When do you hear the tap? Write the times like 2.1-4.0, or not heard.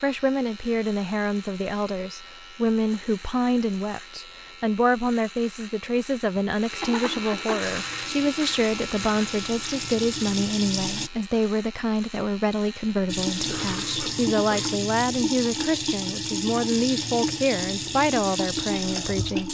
7.6-11.1, 13.1-19.4.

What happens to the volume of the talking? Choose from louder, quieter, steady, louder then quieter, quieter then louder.
steady.